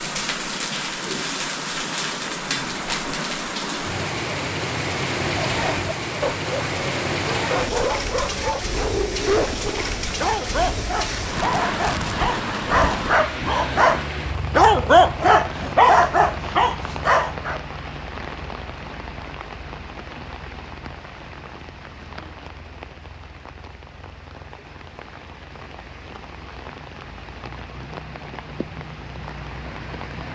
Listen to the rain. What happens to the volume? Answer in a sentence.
The loudness of the rain goes down.